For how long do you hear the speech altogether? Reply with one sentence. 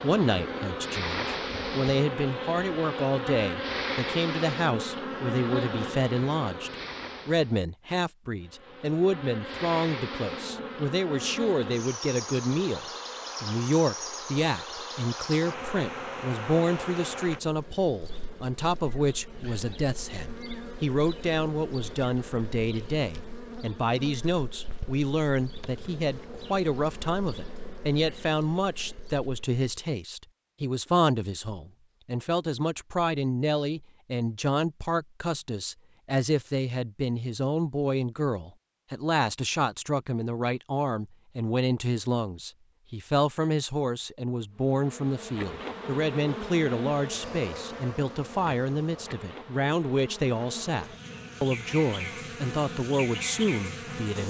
You can hear the speech for 54 seconds altogether.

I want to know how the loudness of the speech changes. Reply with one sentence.
The loudness of the speech stays about the same.